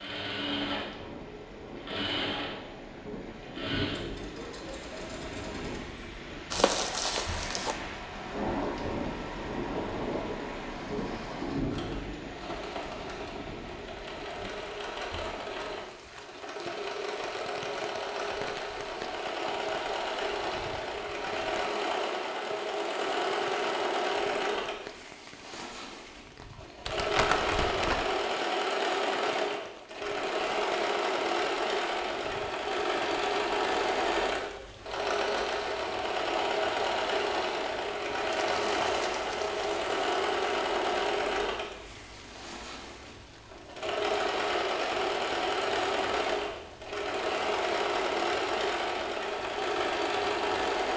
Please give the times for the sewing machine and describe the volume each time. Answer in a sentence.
You can hear the sewing machine from 0.0 to 50.9 s, getting louder.